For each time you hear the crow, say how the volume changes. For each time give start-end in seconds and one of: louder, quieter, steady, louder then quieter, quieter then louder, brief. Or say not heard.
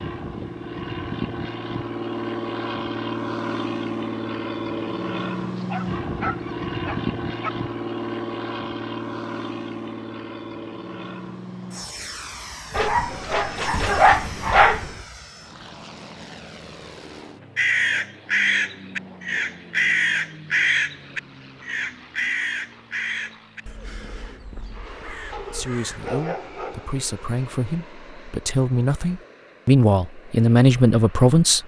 17.6-26.1 quieter.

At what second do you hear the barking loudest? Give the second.
14 s.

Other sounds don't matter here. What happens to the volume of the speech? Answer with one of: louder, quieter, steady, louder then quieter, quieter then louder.
louder.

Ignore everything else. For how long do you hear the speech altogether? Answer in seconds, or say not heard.
6 s.